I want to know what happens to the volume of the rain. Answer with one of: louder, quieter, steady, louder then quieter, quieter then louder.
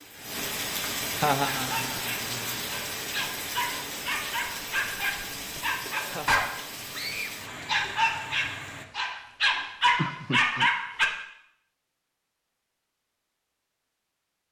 quieter.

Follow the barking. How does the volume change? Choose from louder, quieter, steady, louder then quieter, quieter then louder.
louder.